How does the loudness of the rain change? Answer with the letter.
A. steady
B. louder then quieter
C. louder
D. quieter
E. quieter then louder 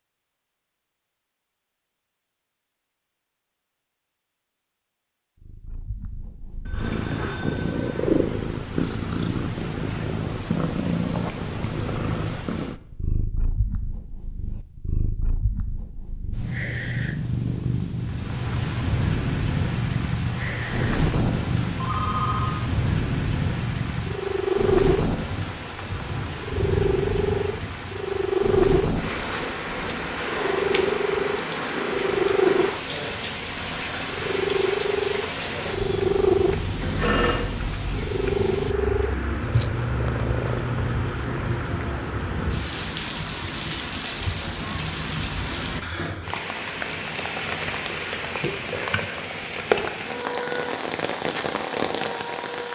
A.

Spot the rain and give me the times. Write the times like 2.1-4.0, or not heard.
18.1-52.6.